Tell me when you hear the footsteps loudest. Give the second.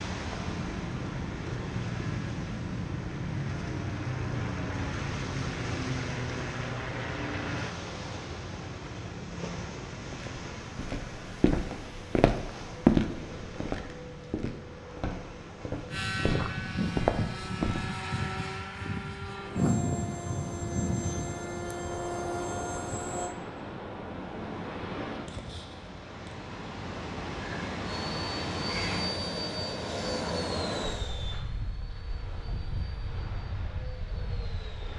13 s.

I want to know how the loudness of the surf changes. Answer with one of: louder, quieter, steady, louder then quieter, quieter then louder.
quieter then louder.